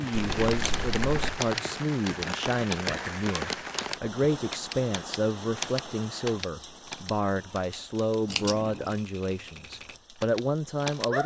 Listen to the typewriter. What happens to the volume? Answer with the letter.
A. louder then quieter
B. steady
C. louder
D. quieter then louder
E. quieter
E.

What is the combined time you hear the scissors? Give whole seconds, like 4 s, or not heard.
2 s.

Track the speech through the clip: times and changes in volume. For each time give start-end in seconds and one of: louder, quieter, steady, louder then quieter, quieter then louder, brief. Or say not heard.
0.0-11.2 steady.